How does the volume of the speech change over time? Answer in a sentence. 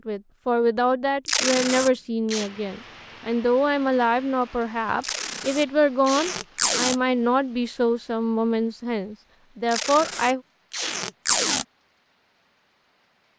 The volume of the speech stays about the same.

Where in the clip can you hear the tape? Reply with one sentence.
The tape can be heard from 1.2 to 2.5 s, from 5.0 to 7.0 s and from 9.7 to 11.7 s.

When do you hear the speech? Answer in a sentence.
You can hear the speech from 0.1 to 10.4 s.